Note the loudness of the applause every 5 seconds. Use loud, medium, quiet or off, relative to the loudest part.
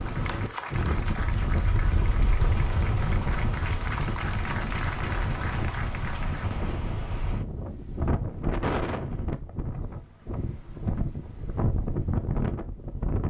loud, loud, off.